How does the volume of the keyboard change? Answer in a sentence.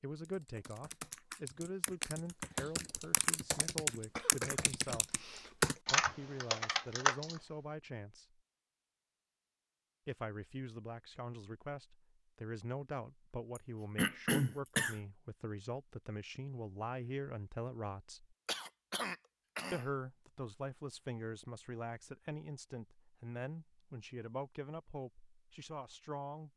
The volume of the keyboard goes up.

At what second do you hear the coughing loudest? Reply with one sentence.
The volume of the coughing peaks at 14 seconds.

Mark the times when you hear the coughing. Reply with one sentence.
You can hear the coughing from 4.2 to 5.7 s, from 13.6 to 15.0 s and from 18.4 to 19.9 s.